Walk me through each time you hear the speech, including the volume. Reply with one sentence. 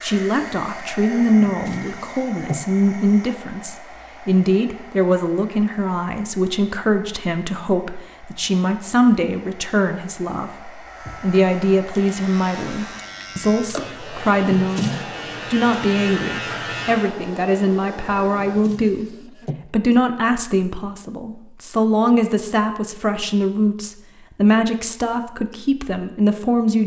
The speech can be heard from 0.0 to 26.8 s, at a steady volume.